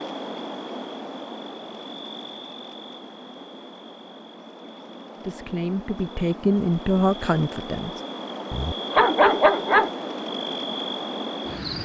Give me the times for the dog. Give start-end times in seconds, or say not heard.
8.5-9.9.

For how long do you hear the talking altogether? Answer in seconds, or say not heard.
3 s.